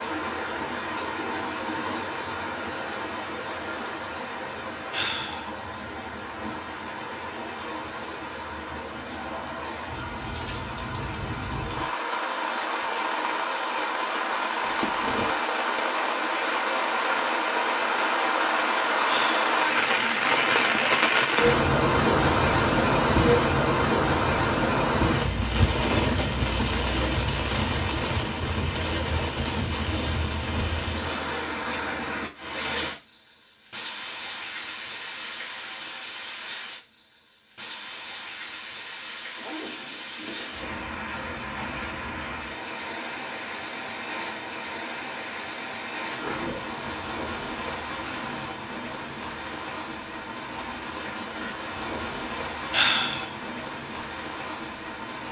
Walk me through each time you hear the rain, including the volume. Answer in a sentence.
You can hear the rain from 0.0 to 55.2 s, getting louder then quieter.